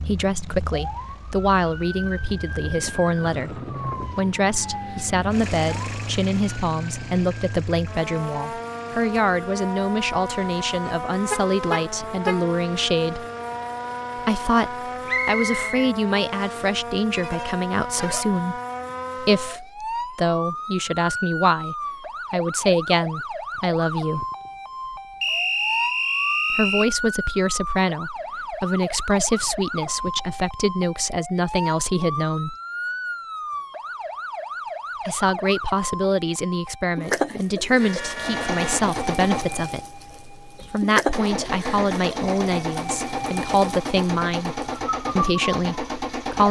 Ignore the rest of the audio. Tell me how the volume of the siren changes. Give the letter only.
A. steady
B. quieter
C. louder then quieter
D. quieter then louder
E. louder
A.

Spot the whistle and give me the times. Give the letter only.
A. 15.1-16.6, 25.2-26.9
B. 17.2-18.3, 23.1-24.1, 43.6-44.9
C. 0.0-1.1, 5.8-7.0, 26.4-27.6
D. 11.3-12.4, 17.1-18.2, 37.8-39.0
A.